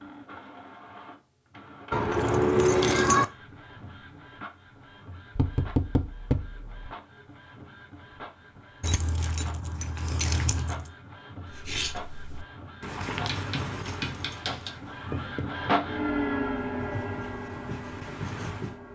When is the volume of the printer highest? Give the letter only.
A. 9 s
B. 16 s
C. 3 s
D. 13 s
B.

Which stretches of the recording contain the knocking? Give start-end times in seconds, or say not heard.
5.3-6.9.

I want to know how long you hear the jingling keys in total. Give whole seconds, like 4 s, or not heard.
5 s.